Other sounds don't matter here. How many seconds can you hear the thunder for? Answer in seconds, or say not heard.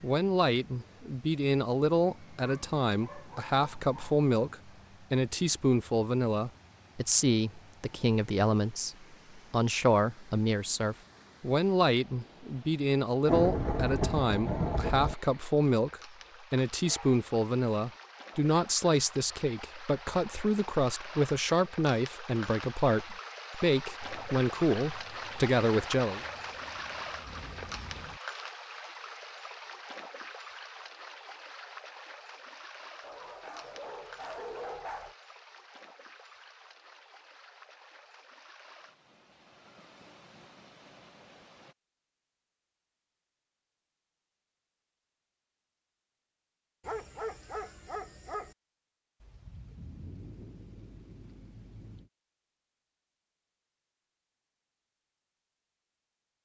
9 s.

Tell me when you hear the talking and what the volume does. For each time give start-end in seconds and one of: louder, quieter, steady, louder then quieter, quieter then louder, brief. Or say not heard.
0.0-26.2 steady.